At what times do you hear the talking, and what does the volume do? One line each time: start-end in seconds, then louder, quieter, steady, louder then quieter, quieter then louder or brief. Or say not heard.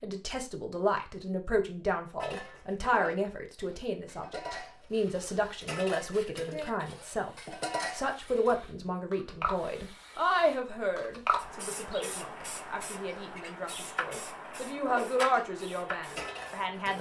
0.0-16.9 steady.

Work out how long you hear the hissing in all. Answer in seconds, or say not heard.
12 s.